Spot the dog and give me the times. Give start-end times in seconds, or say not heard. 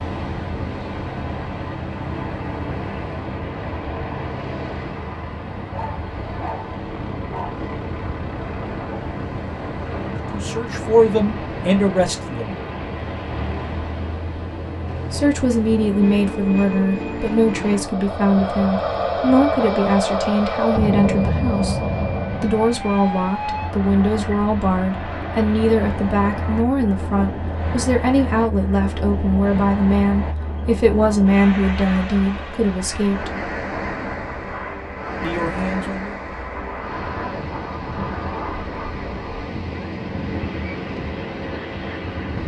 5.7-7.7.